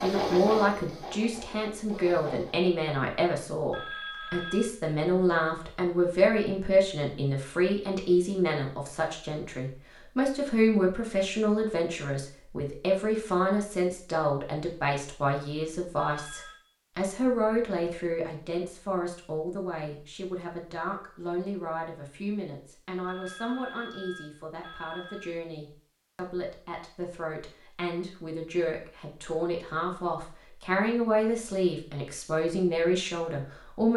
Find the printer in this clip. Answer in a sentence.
You can hear the printer from 0.0 to 2.5 s.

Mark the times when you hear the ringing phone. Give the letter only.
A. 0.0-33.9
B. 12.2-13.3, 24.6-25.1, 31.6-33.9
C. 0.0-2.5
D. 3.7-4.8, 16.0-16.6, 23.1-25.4
D.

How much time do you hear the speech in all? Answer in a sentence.
You can hear the speech for 34 seconds altogether.